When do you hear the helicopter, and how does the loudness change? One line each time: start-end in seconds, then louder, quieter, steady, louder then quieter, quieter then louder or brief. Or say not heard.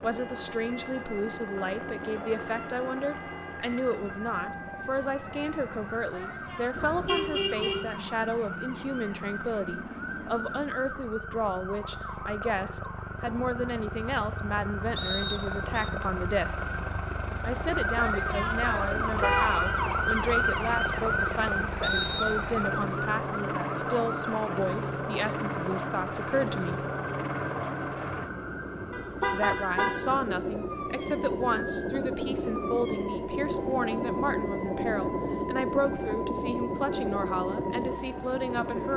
0.0-38.9 louder.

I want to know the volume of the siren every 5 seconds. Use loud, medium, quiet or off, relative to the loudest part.
medium, medium, medium, loud, loud, medium, medium, medium.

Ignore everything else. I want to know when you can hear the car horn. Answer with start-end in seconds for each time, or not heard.
6.8-7.9, 19.1-19.9, 28.9-30.1.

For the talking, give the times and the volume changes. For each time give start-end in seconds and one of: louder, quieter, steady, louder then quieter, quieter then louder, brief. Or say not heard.
0.0-16.6 steady
17.4-26.9 steady
29.3-38.9 steady.